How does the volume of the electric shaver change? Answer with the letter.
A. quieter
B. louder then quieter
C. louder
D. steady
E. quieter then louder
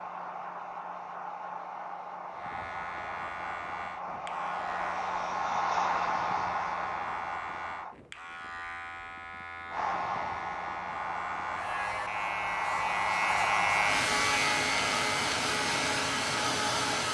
C.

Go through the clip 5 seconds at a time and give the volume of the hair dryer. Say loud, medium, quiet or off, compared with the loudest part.
medium, loud, loud, loud.